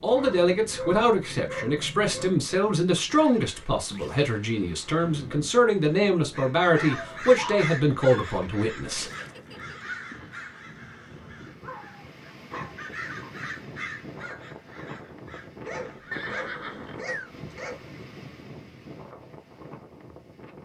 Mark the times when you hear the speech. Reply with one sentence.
The speech can be heard from 0.0 to 9.1 s.